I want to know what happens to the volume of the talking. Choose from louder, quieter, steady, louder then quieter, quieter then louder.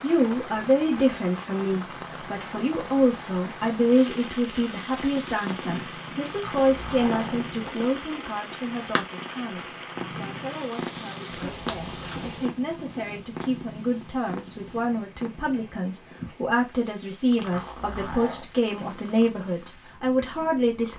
quieter then louder.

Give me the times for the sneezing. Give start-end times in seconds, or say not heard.
11.2-12.6.